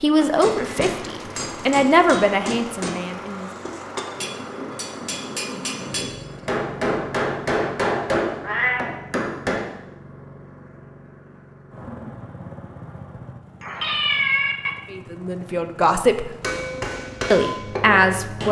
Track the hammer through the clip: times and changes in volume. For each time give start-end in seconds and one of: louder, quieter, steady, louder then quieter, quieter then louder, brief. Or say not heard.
0.4-9.7 louder
16.4-18.4 brief.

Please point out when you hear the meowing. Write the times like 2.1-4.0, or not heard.
0.6-1.6, 8.4-8.9, 13.6-14.7.